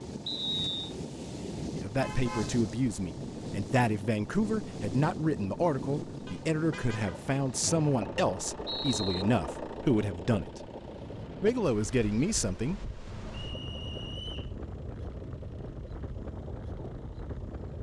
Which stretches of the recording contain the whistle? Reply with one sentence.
The whistle can be heard from 0.2 to 0.9 s, from 7.6 to 9.2 s and from 13.3 to 14.6 s.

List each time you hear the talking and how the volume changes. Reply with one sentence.
The talking can be heard from 1.8 to 10.7 s, at a steady volume; and briefly from 11.4 to 12.8 s.